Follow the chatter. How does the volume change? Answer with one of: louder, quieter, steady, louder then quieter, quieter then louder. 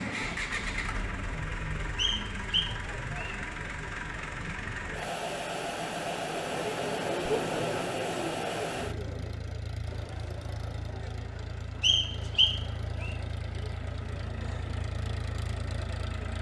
louder then quieter.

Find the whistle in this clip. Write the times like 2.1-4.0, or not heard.
1.9-3.4, 11.8-13.2.